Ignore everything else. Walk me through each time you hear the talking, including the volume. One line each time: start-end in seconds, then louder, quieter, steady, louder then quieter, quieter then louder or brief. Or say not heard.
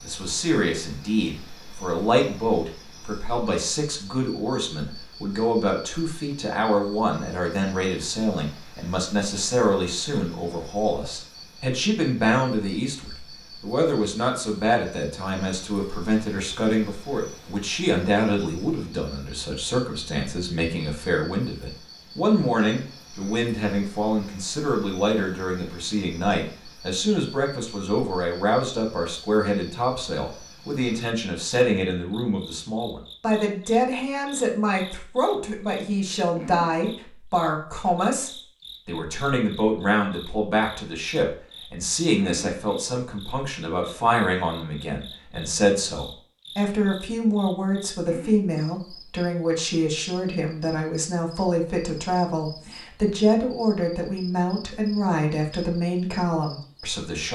0.0-57.3 steady.